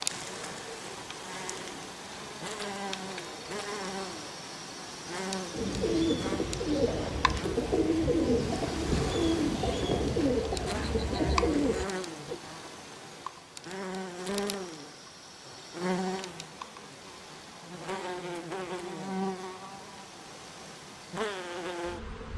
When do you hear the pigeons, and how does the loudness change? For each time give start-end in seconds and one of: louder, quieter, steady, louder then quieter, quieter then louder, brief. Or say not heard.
5.5-12.4 steady.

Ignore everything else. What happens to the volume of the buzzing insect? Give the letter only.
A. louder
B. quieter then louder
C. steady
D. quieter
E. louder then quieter
C.